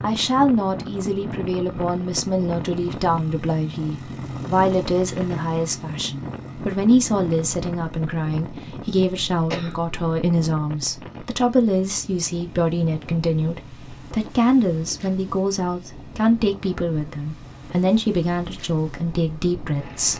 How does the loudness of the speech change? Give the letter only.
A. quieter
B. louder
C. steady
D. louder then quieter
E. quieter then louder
C.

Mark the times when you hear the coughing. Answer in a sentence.
The coughing can be heard from 9.5 to 9.9 s.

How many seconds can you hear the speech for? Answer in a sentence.
You can hear the speech for 20 seconds altogether.